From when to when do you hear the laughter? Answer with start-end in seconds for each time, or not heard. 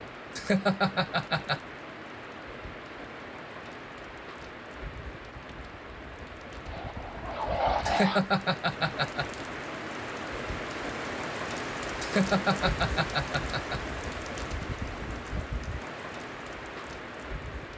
0.3-1.6, 7.8-9.2, 11.9-13.8.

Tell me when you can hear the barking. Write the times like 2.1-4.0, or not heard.
6.7-8.2.